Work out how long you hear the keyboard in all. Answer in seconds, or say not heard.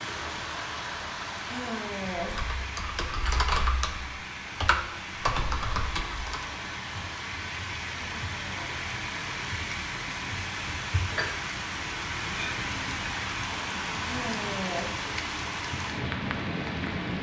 4 s.